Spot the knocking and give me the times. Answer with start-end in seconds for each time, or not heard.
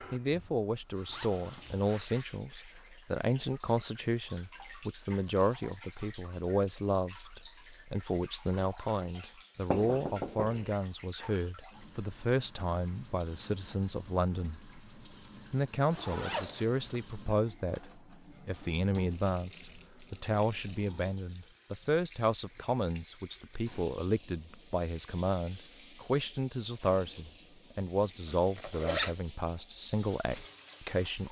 9.7-10.8.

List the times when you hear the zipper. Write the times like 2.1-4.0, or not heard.
1.1-2.1, 15.9-16.8, 28.2-29.1.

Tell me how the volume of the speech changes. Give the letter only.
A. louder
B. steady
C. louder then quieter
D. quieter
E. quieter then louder
B.